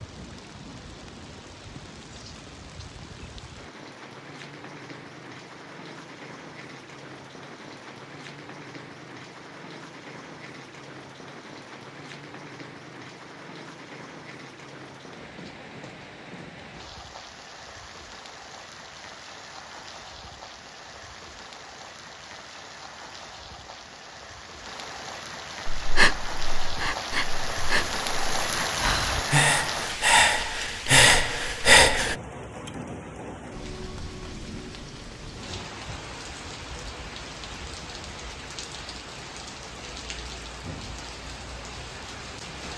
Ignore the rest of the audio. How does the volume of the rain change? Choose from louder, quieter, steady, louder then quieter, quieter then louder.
louder then quieter.